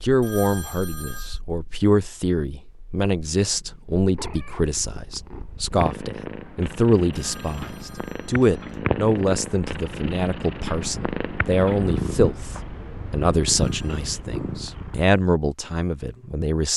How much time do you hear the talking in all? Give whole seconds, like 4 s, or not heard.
17 s.